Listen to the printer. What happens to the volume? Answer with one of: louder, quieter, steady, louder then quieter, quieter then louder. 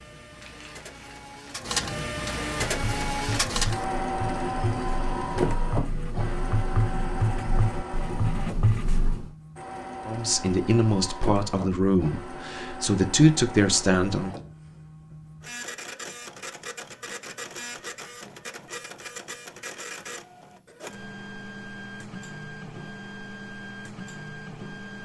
quieter.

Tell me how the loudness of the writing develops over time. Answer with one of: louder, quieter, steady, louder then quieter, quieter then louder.
louder.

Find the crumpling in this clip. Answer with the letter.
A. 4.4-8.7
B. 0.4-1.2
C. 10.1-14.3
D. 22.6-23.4
B.